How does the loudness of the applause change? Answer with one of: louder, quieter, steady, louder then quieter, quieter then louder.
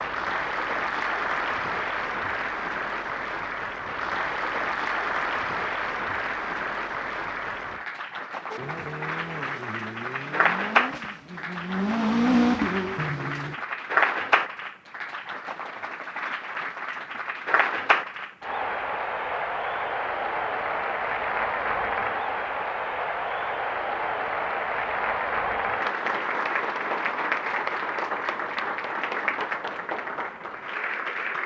steady.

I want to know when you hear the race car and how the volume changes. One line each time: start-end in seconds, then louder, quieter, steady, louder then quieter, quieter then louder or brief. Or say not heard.
8.5-13.6 louder.